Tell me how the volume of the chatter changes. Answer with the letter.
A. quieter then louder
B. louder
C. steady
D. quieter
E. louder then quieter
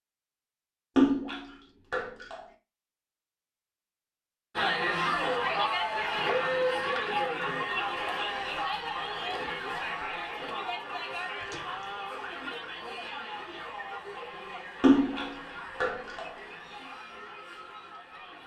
D.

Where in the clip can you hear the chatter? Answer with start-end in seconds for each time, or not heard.
4.5-18.4.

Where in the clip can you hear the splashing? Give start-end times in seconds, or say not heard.
0.9-2.5, 6.1-7.2, 11.4-11.8, 14.8-16.4.